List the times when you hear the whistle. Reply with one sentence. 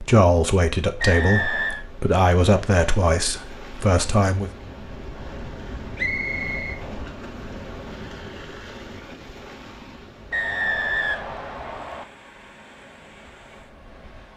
The whistle can be heard from 1.0 to 1.9 s, from 6.0 to 6.8 s and from 10.3 to 12.1 s.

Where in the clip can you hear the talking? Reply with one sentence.
You can hear the talking from 0.0 to 4.5 s.